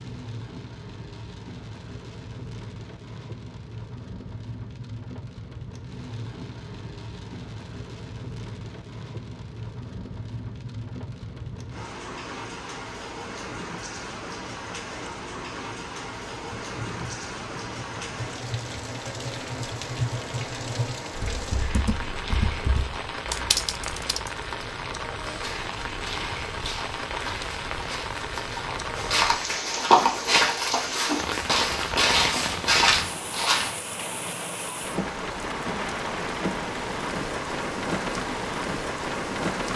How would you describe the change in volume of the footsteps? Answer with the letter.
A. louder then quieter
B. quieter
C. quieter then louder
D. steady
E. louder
E.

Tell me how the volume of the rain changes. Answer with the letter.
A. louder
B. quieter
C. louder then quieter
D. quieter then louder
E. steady
A.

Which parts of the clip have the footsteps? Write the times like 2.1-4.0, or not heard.
25.2-33.7.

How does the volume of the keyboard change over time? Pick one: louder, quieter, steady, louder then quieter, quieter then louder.
louder.